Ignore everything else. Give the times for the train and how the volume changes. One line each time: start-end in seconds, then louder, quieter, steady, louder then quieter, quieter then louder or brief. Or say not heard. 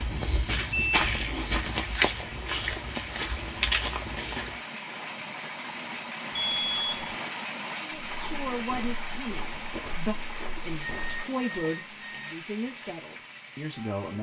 0.0-14.1 louder then quieter.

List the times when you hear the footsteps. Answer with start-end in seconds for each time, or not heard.
0.0-4.5, 8.1-11.2.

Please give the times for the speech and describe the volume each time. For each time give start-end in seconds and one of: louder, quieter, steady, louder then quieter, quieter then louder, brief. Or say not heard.
7.8-14.1 steady.